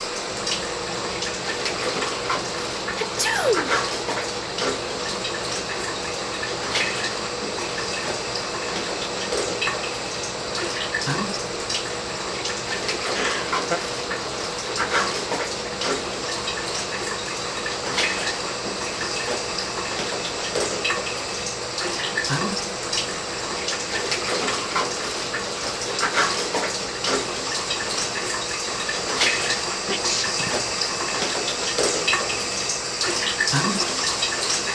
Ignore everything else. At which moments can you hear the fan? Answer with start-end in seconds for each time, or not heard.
0.0-34.7.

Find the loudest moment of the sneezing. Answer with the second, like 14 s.
3 s.